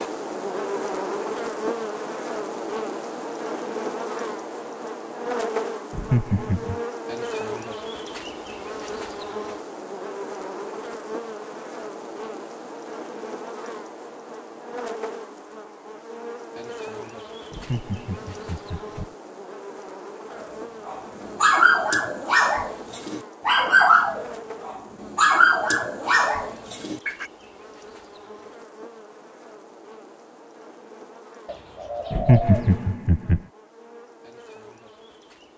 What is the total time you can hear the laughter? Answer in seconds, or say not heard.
4 s.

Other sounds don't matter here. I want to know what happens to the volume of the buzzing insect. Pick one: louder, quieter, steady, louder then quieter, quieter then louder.
quieter.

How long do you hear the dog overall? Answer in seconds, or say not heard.
7 s.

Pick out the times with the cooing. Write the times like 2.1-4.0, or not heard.
31.4-32.9.